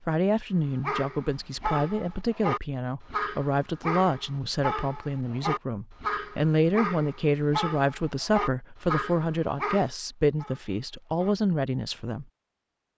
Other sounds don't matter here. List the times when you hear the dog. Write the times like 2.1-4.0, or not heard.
0.8-11.3.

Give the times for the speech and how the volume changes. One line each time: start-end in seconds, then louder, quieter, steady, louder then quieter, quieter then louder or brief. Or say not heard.
0.1-12.2 steady.